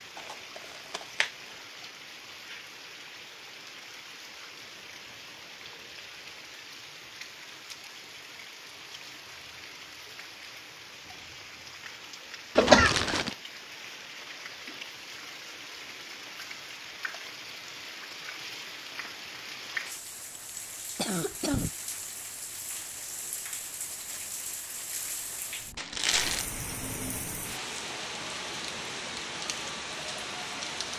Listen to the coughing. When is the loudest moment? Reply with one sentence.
The loudest moment of the coughing is at 13 seconds.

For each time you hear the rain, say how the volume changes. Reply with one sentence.
You can hear the rain from 0.0 to 30.9 s, getting louder.